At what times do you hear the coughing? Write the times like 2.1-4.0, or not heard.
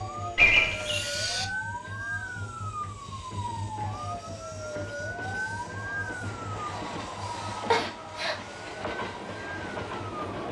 0.3-1.5, 7.7-8.3.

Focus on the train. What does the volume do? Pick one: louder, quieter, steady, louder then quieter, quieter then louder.
louder.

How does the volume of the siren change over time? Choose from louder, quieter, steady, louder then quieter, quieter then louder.
quieter.